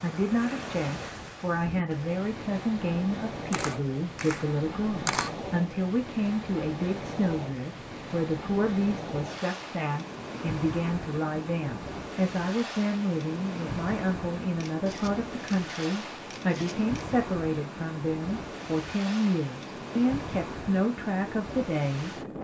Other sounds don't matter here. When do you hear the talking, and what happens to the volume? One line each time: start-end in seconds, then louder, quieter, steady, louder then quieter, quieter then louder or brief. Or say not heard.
0.0-22.2 steady.